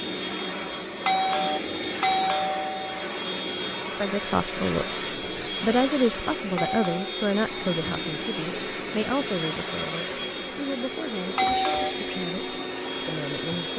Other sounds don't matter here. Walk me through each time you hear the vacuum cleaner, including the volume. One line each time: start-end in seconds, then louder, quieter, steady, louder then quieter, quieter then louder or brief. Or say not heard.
0.0-13.7 steady.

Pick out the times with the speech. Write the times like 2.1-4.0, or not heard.
3.9-13.7.